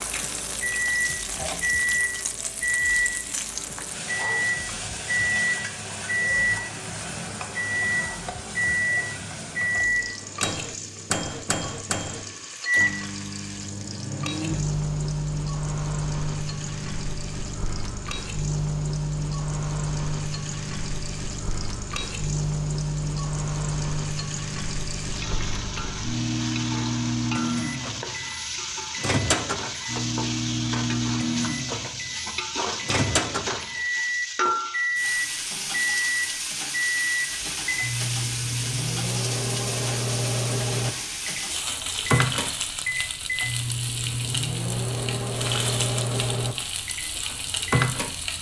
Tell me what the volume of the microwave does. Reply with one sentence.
The volume of the microwave stays about the same.